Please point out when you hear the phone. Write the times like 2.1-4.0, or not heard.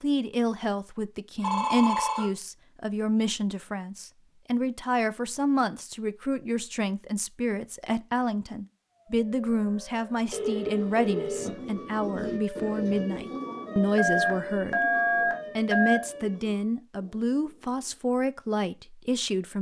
1.4-2.3, 10.3-11.6, 13.9-16.0.